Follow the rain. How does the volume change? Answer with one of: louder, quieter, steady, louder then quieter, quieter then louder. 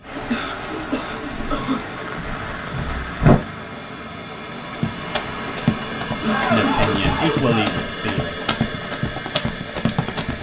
quieter.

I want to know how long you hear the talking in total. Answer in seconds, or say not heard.
2 s.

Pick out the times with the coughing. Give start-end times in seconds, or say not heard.
0.1-2.0, 6.2-7.8.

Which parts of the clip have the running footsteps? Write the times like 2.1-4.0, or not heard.
4.7-10.3.